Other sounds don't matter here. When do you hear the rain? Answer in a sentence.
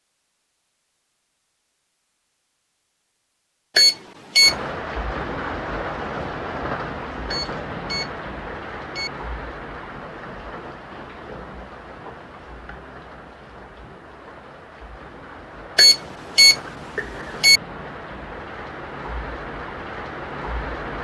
The rain can be heard from 4.4 to 20.9 s.